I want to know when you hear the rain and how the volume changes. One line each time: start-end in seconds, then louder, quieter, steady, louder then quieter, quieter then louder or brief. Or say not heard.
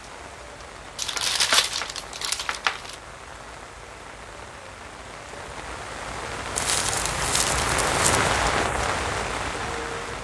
0.0-10.2 louder.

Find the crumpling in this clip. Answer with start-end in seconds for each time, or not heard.
0.9-3.0, 6.5-8.2.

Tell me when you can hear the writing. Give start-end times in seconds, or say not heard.
not heard.